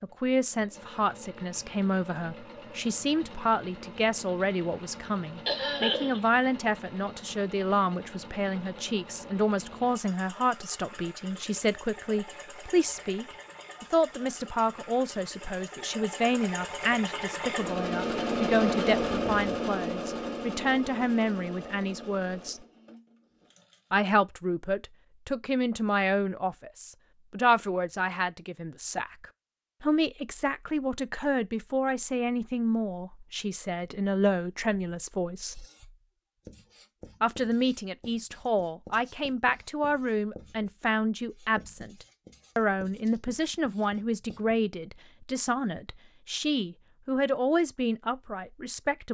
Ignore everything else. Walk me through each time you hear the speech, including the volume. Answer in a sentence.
You can hear the speech from 0.0 to 22.6 s, at a steady volume; from 23.9 to 35.6 s, at a steady volume; and from 37.2 to 49.0 s, at a steady volume.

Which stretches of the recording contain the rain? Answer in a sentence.
The rain can't be heard in this clip.